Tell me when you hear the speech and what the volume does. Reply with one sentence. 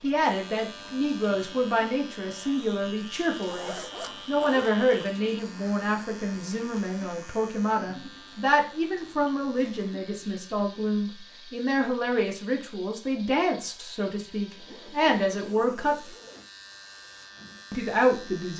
The speech can be heard from 0.0 to 15.9 s, at a steady volume; and briefly from 17.7 to 18.5 s.